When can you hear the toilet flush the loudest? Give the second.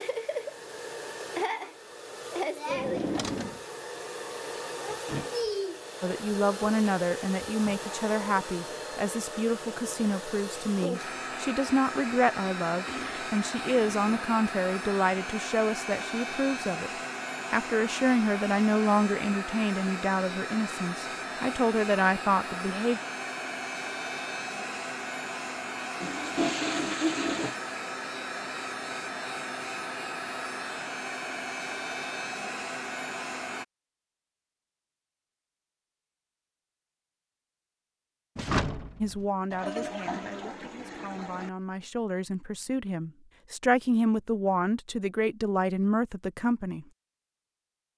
27 s.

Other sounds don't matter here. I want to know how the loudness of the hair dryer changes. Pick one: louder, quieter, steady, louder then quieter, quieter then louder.
steady.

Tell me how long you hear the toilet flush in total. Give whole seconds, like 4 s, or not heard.
5 s.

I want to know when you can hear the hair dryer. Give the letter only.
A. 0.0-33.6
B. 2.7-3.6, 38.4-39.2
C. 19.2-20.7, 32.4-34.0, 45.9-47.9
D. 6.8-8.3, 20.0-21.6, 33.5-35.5
A.